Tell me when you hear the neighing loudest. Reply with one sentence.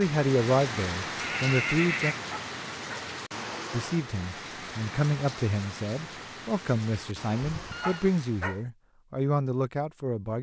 The volume of the neighing peaks at 2 seconds.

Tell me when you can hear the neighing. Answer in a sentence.
The neighing can be heard from 1.2 to 2.2 s and from 7.4 to 8.1 s.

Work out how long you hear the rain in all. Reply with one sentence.
You can hear the rain for 9 seconds altogether.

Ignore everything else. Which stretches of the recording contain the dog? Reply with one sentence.
You can hear the dog from 2.3 to 3.1 s and from 7.8 to 8.6 s.